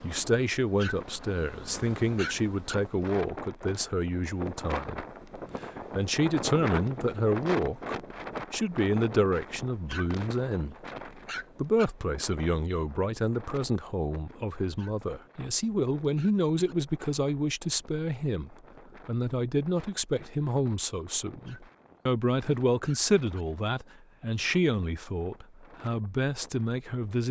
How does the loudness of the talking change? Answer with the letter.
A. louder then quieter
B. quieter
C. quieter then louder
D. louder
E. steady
E.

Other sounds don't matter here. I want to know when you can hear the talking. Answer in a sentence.
The talking can be heard from 0.0 to 10.9 s and from 11.6 to 27.2 s.